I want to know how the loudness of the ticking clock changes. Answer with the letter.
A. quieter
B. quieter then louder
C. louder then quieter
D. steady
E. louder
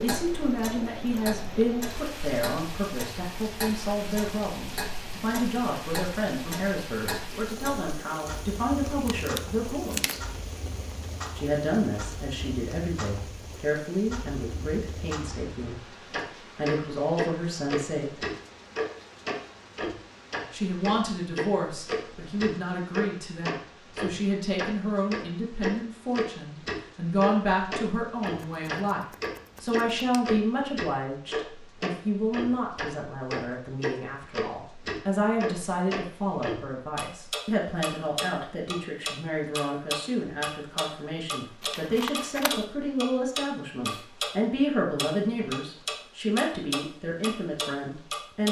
E.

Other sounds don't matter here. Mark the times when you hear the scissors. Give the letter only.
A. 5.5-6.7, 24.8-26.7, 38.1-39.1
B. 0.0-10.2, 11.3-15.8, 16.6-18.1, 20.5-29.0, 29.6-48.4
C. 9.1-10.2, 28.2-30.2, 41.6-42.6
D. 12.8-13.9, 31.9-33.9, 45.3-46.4
C.